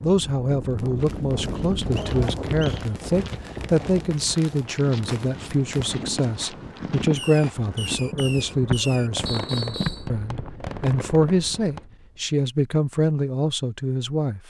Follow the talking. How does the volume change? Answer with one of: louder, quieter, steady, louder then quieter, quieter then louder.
steady.